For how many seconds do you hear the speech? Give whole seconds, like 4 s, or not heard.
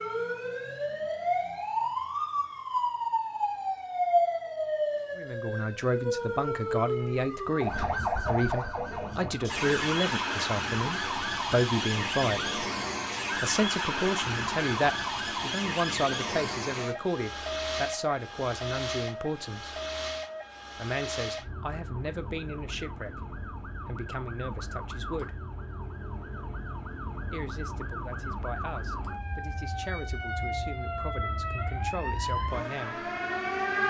24 s.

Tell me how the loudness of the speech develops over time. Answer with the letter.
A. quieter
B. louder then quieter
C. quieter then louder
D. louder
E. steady
A.